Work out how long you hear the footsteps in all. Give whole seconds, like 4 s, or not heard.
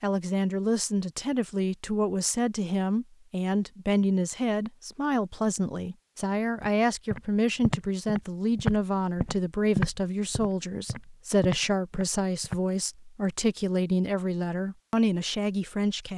6 s.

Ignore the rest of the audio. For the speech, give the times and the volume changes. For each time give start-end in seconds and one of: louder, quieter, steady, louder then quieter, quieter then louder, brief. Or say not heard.
0.0-16.1 steady.